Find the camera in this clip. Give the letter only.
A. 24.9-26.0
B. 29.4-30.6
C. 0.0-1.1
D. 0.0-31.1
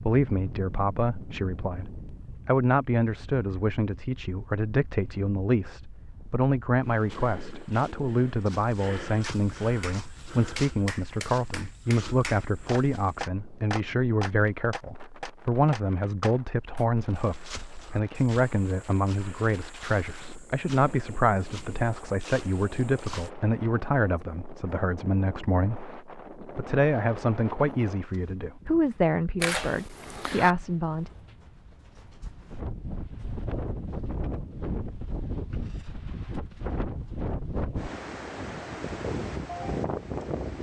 B.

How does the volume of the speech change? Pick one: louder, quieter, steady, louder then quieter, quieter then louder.
steady.